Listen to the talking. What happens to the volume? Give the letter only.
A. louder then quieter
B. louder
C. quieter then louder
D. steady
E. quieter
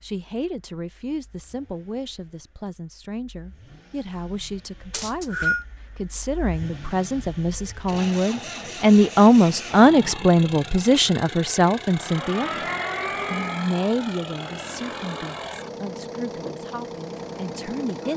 A.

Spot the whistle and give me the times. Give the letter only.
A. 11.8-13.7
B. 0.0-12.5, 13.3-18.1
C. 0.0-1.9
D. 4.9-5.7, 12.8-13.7
D.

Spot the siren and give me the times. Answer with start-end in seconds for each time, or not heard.
11.8-13.7.